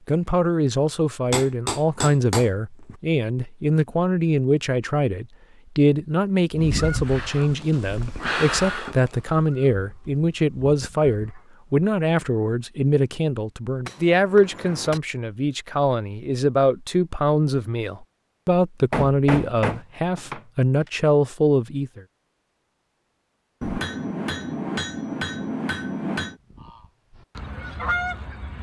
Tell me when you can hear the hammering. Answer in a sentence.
You can hear the hammering from 1.3 to 3.0 s, from 7.4 to 9.2 s, from 13.8 to 15.0 s, from 18.9 to 20.9 s and from 23.6 to 26.4 s.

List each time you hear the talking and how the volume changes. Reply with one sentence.
The talking can be heard from 0.1 to 22.0 s, at a steady volume.